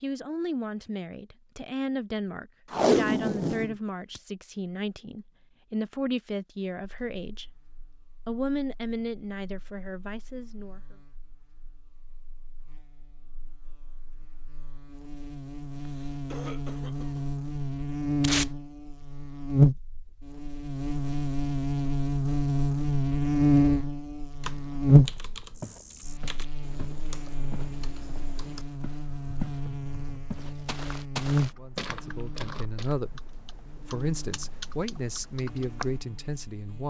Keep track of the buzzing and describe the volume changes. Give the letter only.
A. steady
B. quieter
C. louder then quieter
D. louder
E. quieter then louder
C.